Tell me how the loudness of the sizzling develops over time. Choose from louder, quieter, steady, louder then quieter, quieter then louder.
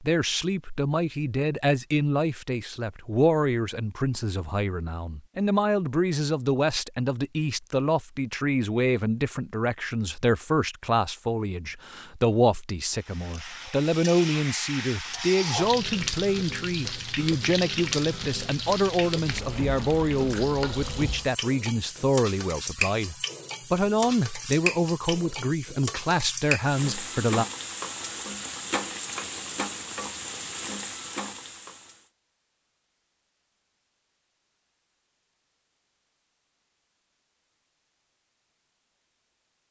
steady.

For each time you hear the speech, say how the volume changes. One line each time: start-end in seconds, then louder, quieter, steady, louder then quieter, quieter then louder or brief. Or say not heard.
0.0-27.4 steady.